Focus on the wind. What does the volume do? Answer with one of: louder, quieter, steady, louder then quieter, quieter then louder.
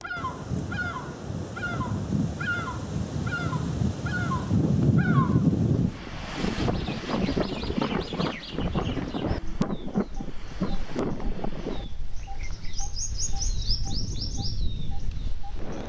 louder then quieter.